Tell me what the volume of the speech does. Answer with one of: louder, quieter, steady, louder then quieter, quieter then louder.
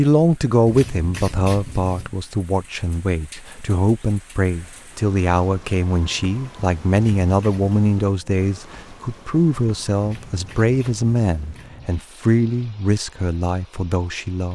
steady.